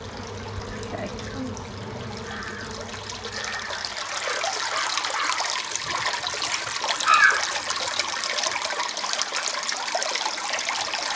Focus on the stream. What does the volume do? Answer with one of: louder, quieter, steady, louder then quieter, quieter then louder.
louder.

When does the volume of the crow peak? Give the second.
7 s.